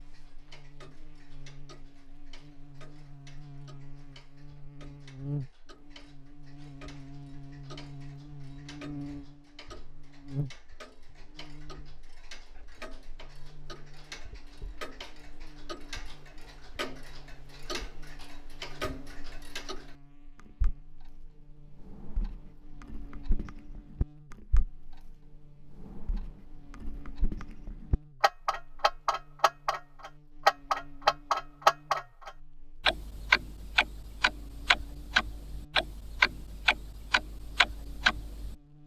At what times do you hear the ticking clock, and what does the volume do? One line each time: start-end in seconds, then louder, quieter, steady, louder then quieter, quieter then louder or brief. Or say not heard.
0.0-38.5 louder.